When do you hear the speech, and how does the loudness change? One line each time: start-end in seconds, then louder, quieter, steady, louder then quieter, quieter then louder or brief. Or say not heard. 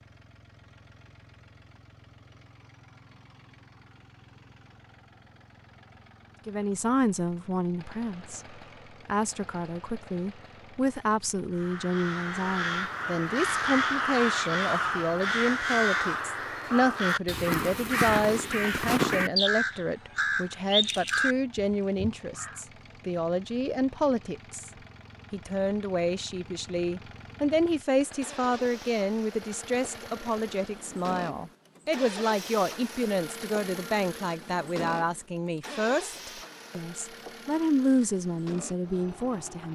6.5-24.7 steady
25.3-39.7 steady.